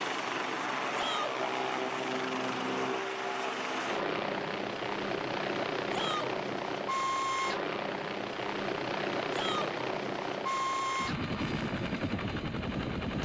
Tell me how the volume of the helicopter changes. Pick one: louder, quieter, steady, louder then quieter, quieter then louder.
steady.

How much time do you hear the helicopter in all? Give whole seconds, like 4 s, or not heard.
13 s.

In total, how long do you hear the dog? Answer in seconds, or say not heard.
not heard.